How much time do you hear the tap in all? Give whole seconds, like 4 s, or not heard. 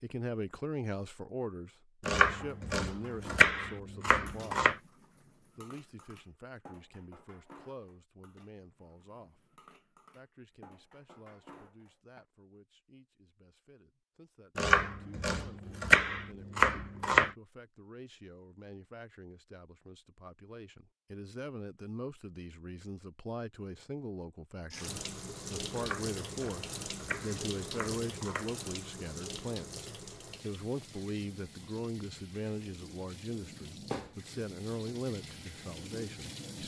12 s.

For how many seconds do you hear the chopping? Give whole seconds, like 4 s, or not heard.
8 s.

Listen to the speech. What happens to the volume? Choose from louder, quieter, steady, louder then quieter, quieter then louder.
quieter then louder.